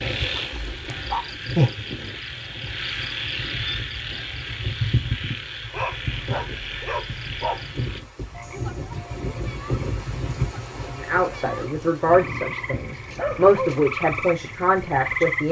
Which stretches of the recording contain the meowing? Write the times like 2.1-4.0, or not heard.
not heard.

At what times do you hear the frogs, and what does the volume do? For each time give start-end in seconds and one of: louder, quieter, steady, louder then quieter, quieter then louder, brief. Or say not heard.
0.0-15.4 quieter then louder.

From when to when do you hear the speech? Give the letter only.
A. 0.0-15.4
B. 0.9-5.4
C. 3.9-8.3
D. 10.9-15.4
D.